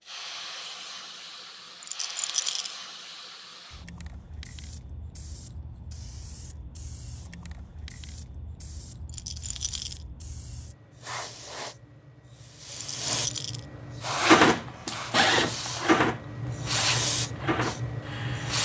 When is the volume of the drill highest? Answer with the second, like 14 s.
15 s.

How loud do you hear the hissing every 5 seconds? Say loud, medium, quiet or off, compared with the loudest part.
medium, quiet, loud, loud.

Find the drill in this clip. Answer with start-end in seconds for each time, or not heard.
14.1-18.5.